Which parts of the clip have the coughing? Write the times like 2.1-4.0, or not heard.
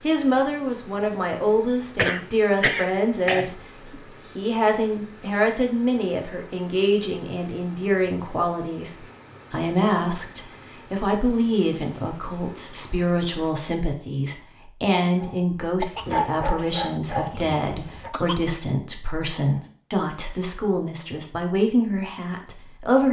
1.9-3.5, 15.8-18.4.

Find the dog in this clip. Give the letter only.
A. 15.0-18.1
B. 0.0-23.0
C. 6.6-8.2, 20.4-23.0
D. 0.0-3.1
A.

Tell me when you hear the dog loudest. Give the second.
16 s.